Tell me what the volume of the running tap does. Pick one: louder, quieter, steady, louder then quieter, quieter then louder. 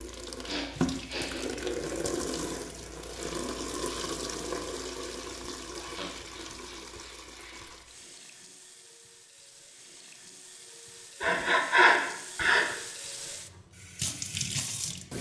quieter then louder.